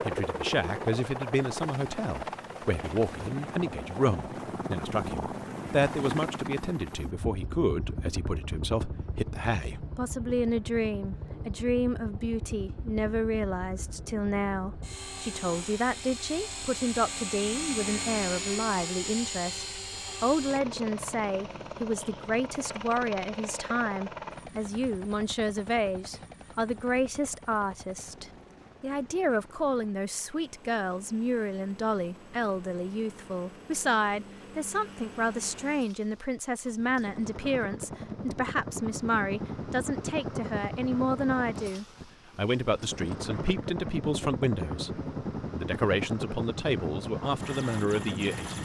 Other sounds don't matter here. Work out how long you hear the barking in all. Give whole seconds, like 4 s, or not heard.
not heard.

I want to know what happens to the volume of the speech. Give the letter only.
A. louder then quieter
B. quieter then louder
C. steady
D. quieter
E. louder
C.